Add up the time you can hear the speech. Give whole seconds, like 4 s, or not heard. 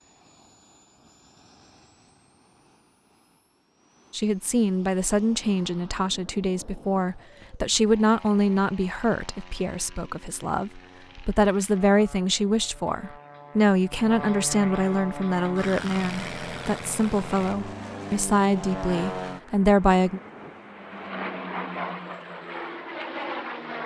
16 s.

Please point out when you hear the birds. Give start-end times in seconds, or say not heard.
not heard.